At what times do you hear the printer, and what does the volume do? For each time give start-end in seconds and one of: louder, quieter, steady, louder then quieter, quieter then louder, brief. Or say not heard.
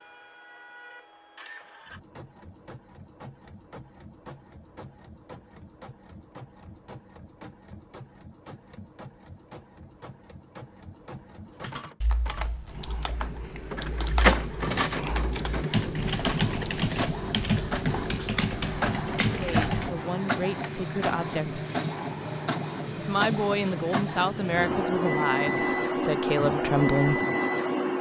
0.0-27.9 louder.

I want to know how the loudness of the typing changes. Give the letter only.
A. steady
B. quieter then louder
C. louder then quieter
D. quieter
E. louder
E.